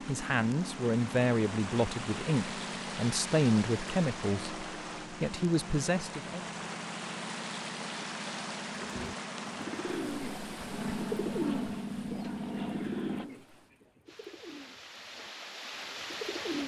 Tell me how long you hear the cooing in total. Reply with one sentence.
The cooing can be heard for 8 seconds in total.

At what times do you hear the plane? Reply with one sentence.
The plane can be heard from 0.0 to 13.2 s.